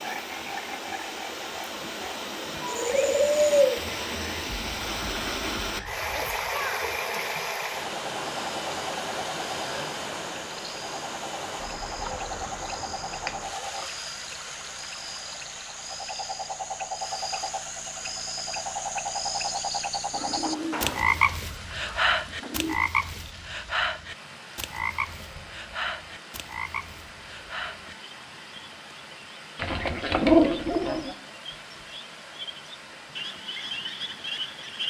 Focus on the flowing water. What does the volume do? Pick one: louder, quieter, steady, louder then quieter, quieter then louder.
quieter.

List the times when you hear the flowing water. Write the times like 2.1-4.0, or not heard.
0.0-34.8.